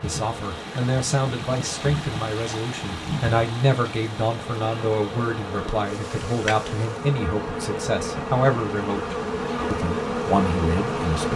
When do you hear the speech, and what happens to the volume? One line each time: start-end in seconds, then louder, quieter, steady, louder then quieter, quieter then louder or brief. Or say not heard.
0.0-11.3 steady.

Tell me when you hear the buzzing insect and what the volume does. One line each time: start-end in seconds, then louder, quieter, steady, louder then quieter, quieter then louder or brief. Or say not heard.
0.0-11.3 louder.